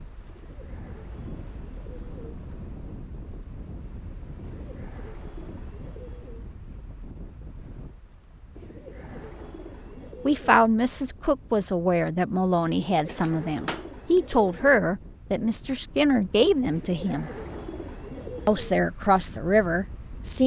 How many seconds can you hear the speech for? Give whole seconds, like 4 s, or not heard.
9 s.